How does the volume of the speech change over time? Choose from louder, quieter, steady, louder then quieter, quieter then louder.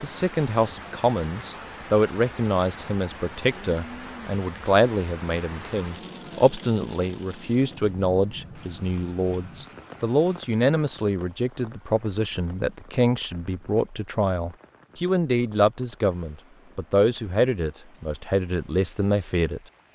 steady.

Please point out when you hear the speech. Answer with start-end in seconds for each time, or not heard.
0.0-19.6.